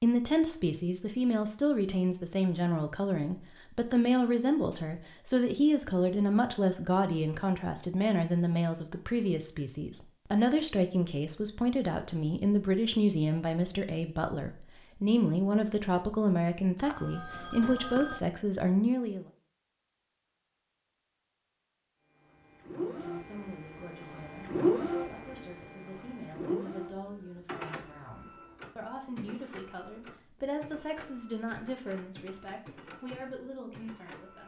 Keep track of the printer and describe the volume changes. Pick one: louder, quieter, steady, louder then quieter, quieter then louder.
quieter.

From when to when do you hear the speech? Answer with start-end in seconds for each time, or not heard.
0.0-19.2, 22.8-34.4.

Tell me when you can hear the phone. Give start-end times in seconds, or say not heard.
16.8-18.2.